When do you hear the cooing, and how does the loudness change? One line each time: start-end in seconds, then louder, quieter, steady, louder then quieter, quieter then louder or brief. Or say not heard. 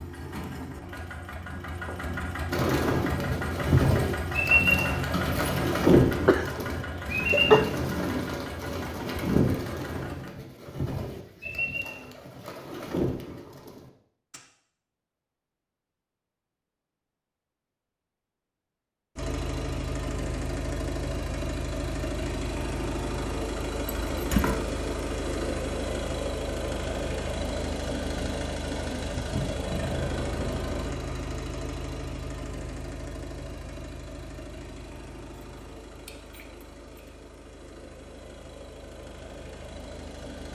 2.5-14.4 quieter.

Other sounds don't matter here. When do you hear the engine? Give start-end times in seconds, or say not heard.
0.0-10.3, 19.1-40.5.